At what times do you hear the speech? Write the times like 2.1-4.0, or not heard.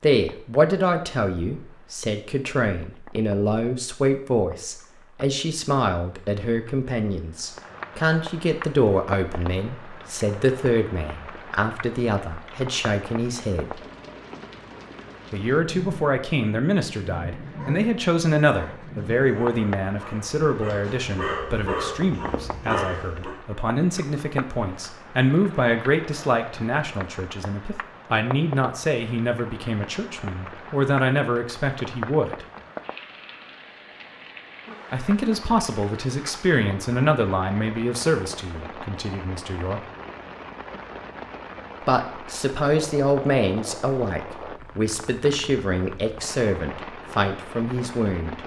0.0-13.8, 15.3-32.5, 34.9-39.8, 41.9-48.4.